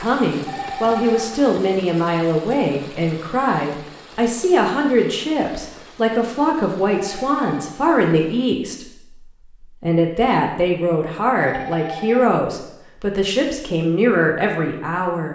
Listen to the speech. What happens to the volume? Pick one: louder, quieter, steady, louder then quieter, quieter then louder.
steady.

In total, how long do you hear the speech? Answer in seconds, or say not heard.
15 s.